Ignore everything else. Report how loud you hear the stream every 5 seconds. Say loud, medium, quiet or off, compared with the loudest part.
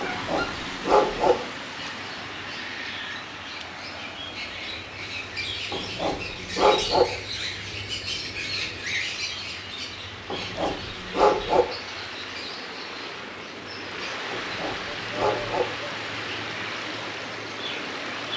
loud, medium, loud, loud.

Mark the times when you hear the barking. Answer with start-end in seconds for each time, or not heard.
0.0-1.4, 5.7-7.0, 10.3-11.7, 14.3-15.7.